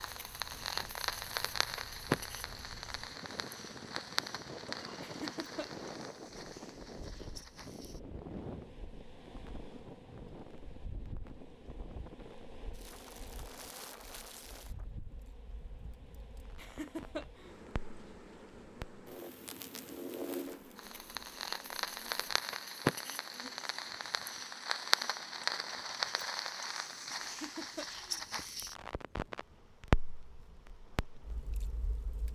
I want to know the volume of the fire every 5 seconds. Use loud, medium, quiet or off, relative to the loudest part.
loud, quiet, quiet, quiet, loud, loud, quiet.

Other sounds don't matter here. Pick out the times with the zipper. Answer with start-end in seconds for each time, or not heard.
not heard.